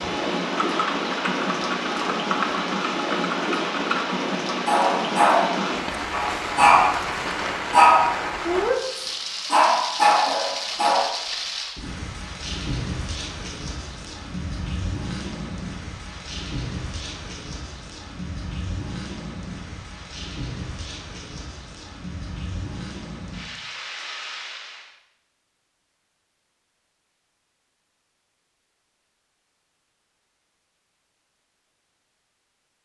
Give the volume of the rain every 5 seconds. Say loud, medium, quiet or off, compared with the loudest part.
loud, loud, medium, medium, medium, off, off.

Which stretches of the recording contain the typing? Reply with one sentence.
The typing can be heard from 0.0 to 4.2 s.